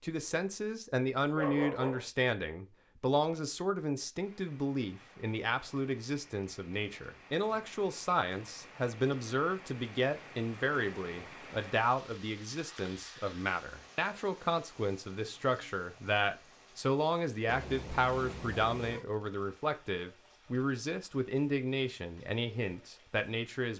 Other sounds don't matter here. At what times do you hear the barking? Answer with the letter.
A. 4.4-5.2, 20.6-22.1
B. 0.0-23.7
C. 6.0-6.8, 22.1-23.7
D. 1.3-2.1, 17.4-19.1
D.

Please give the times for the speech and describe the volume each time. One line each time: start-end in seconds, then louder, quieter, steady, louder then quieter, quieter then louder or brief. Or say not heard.
0.0-23.7 steady.